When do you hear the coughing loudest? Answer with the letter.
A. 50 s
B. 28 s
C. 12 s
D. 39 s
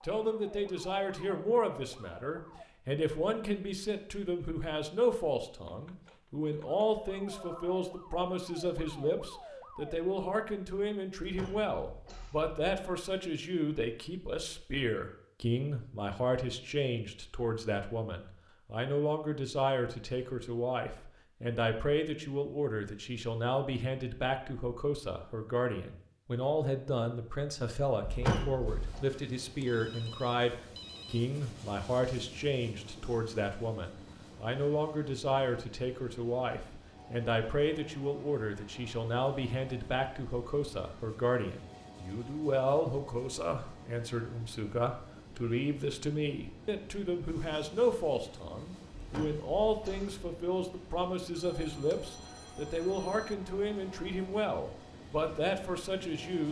B.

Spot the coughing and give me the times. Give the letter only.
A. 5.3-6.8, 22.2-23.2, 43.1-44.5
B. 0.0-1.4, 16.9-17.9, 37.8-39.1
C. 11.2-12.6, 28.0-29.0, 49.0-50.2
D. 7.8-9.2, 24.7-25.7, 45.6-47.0
C.